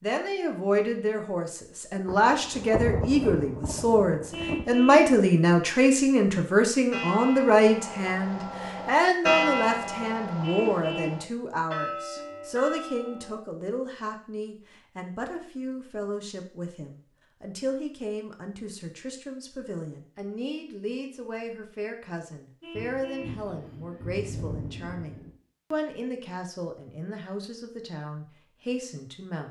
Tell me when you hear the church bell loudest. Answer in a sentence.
The loudest moment of the church bell is at 9 seconds.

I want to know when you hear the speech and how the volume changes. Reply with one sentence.
The speech can be heard from 0.0 to 29.4 s, getting quieter.